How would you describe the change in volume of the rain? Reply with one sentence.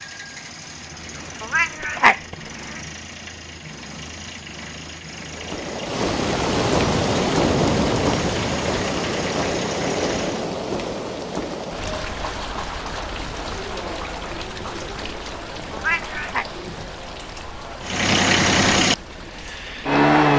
The loudness of the rain goes down.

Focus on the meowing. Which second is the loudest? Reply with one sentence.
The volume of the meowing peaks at 2 seconds.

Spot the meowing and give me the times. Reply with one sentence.
You can hear the meowing from 1.4 to 2.4 s and from 15.7 to 16.4 s.